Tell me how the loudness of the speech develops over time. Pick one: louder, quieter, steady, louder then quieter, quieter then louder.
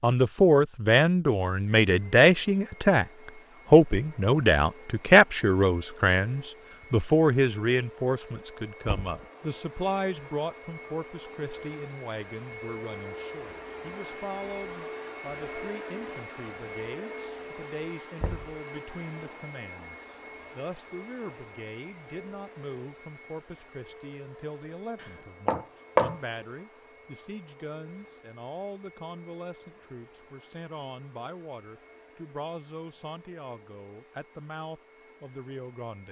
quieter.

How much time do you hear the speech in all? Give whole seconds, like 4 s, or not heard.
35 s.